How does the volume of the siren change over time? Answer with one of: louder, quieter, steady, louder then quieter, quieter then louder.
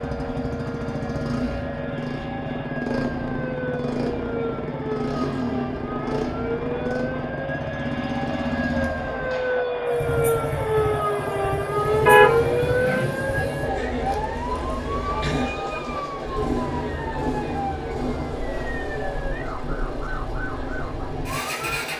louder then quieter.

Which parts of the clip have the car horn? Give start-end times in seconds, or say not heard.
12.1-13.2.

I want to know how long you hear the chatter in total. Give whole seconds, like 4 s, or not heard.
22 s.